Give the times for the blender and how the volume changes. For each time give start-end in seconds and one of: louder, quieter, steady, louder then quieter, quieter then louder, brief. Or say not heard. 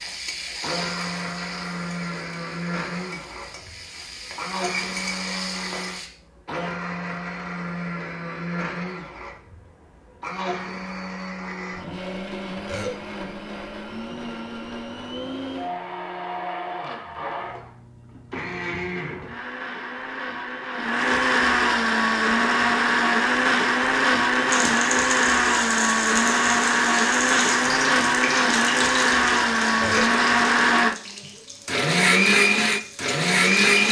0.0-33.8 louder.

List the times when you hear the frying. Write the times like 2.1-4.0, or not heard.
0.0-6.1, 24.5-33.8.